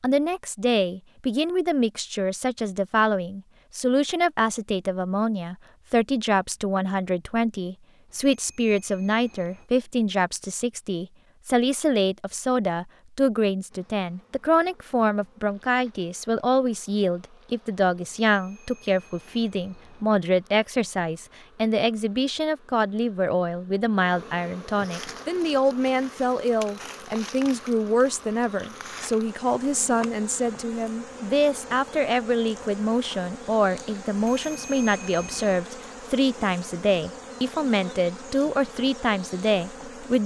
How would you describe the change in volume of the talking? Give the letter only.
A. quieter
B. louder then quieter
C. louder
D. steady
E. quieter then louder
D.